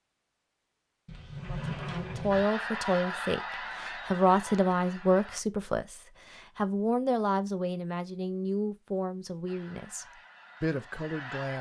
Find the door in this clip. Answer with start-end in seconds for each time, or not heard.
1.1-2.5.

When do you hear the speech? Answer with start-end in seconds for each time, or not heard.
1.4-11.5.